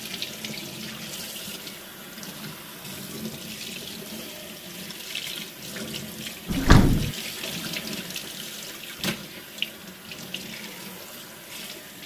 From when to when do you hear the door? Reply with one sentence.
You can hear the door from 6.5 to 7.1 s.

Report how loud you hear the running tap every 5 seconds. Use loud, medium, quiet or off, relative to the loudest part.
loud, loud, medium.